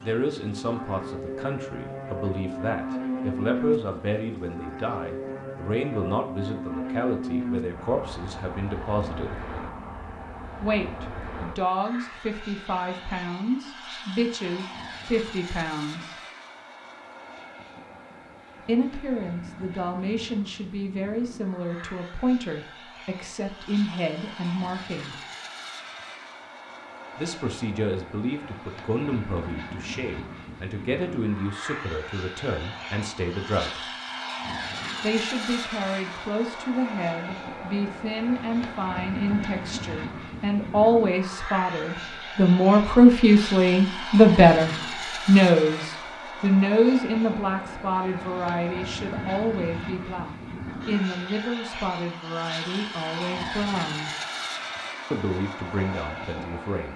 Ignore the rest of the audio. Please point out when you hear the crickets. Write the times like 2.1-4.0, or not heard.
not heard.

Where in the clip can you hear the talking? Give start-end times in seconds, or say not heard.
0.0-9.3, 10.6-16.1, 18.6-25.1, 27.1-33.9, 35.0-54.1, 55.1-56.9.